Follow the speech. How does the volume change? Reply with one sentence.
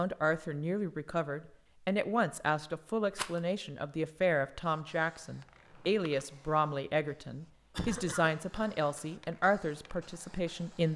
The volume of the speech stays about the same.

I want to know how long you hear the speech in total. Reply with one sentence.
The speech can be heard for 11 seconds in total.